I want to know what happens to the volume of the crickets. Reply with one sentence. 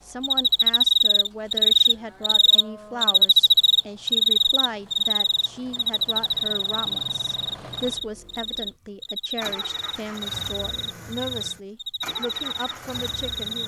The loudness of the crickets goes down.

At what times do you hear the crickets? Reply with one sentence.
You can hear the crickets from 0.2 to 13.6 s.